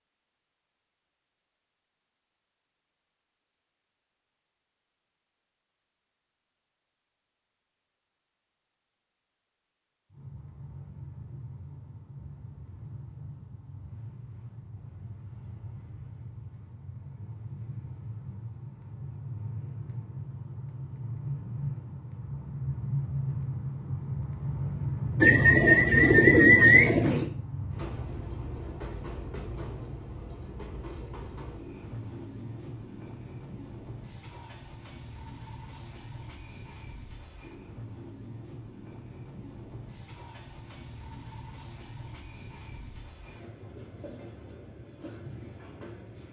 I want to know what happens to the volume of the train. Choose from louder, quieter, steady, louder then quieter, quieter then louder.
louder then quieter.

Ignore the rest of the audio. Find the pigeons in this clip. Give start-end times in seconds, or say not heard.
25.2-27.2.